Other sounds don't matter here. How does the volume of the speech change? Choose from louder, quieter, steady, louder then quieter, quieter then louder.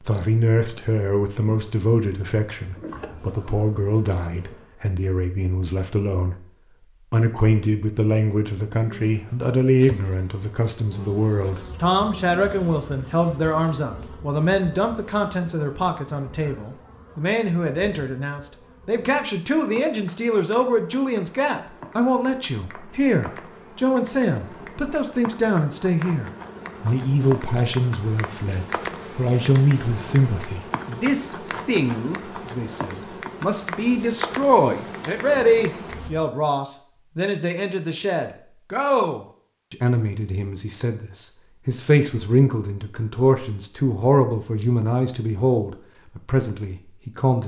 steady.